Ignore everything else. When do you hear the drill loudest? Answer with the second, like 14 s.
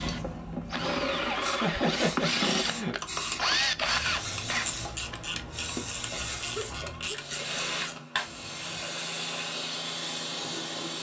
4 s.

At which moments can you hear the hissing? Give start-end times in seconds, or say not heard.
0.0-10.9.